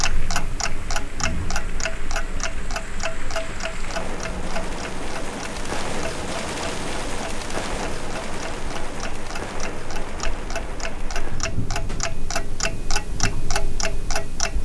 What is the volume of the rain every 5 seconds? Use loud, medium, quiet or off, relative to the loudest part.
medium, loud, medium.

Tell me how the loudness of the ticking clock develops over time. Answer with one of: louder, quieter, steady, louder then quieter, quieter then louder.
quieter then louder.